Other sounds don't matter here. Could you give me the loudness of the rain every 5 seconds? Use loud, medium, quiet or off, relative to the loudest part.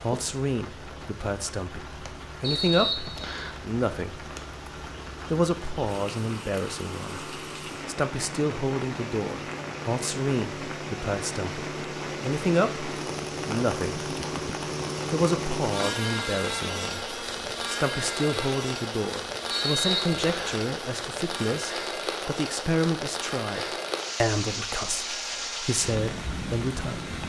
medium, medium, loud, loud, loud, loud.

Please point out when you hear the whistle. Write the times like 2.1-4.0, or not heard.
2.4-3.5, 19.5-20.6.